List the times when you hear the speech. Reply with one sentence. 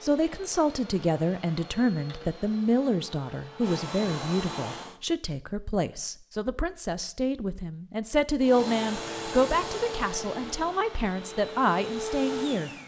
You can hear the speech from 0.0 to 12.7 s.